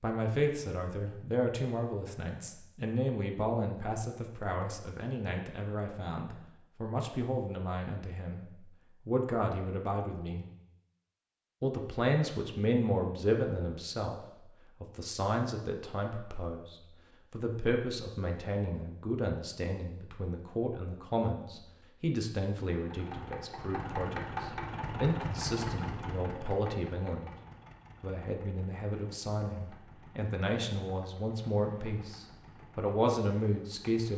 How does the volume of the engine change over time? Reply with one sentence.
The loudness of the engine goes down.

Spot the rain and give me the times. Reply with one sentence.
You can't hear the rain here.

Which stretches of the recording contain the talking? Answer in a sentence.
The talking can be heard from 0.0 to 10.4 s, from 11.6 to 27.4 s and from 28.0 to 34.1 s.